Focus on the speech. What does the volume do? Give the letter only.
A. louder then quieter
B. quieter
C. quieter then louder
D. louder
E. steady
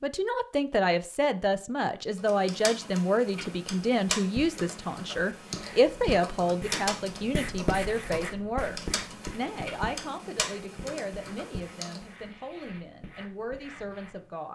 B.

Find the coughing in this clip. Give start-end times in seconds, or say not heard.
not heard.